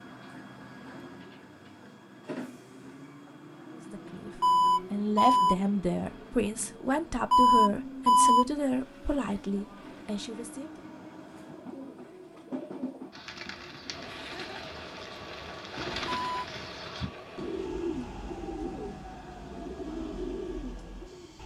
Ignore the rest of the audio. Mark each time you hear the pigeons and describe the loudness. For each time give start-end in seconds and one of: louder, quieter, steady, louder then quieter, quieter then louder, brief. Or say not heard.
11.4-21.4 louder.